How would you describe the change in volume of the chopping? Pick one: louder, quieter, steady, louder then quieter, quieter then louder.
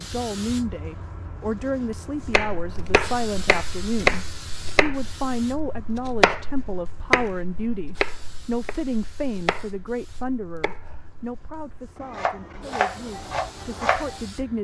quieter then louder.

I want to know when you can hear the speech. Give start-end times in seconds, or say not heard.
0.0-14.5.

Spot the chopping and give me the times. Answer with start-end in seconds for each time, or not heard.
2.2-14.2.